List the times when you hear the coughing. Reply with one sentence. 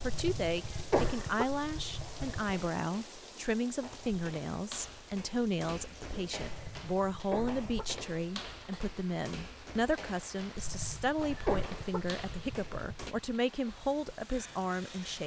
You can hear the coughing from 0.0 to 2.6 s, from 6.3 to 8.0 s and from 10.6 to 13.2 s.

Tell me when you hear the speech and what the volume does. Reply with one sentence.
The speech can be heard from 0.0 to 15.2 s, at a steady volume.